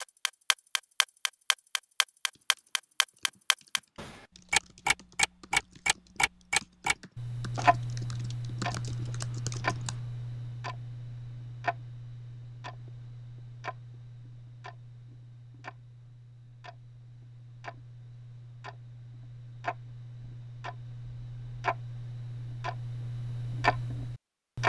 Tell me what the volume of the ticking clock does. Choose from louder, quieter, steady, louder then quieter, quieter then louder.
quieter then louder.